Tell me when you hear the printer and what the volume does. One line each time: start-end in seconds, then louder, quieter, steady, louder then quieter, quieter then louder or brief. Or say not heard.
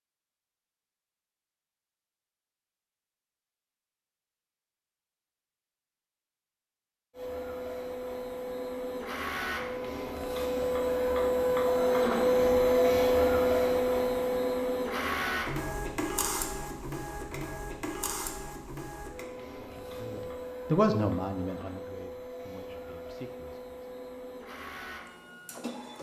7.2-25.9 louder then quieter.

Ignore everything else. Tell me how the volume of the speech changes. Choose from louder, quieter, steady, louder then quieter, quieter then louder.
louder then quieter.